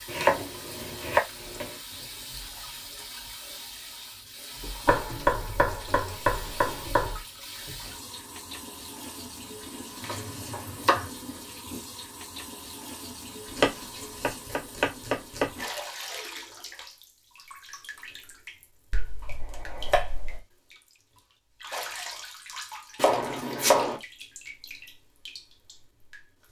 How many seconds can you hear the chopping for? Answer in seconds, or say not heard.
10 s.